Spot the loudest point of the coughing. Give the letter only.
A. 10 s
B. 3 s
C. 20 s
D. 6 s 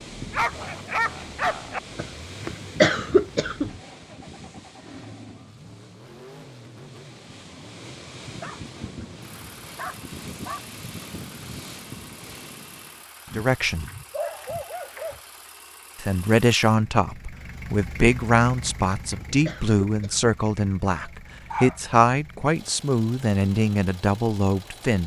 B.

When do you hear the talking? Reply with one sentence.
You can hear the talking from 13.3 to 13.8 s and from 16.0 to 25.0 s.